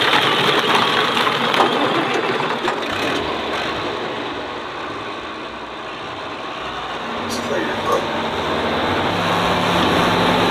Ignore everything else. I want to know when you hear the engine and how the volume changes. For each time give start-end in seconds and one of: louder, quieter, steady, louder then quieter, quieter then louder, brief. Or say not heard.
0.0-10.4 quieter then louder.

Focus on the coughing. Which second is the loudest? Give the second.
8 s.